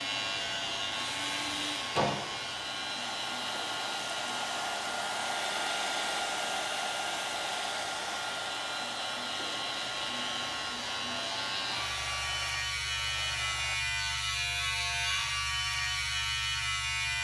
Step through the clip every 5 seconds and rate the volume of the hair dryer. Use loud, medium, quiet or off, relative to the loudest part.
loud, loud, medium, off.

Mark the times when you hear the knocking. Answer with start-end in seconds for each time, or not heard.
1.5-2.1.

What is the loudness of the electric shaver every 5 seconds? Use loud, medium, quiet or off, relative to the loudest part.
medium, medium, loud, loud.